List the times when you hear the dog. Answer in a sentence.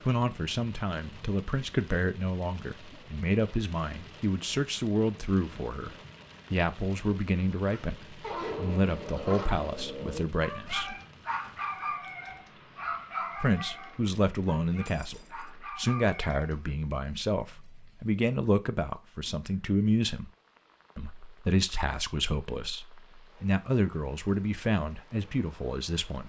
The dog can be heard from 7.7 to 16.6 s.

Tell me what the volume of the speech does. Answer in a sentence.
The volume of the speech stays about the same.